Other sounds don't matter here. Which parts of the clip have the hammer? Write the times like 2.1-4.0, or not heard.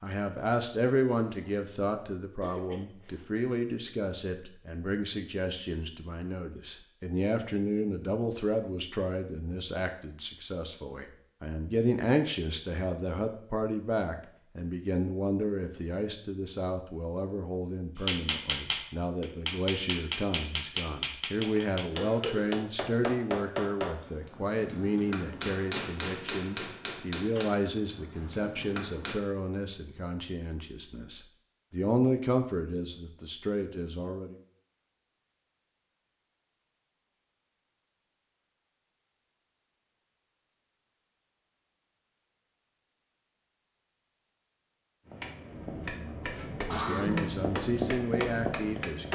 18.0-29.2, 45.0-49.0.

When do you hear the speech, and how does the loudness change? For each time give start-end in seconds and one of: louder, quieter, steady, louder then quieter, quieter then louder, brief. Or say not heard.
0.0-34.4 steady
46.0-49.0 brief.